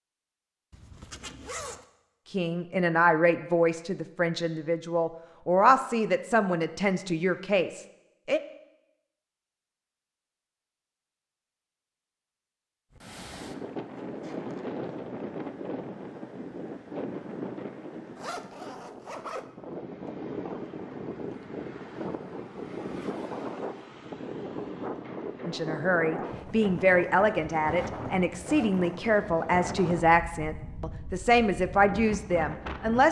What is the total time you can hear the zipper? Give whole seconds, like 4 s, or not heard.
4 s.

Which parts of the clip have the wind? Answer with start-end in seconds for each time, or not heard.
12.9-33.0.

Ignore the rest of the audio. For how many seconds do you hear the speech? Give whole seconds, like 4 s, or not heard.
14 s.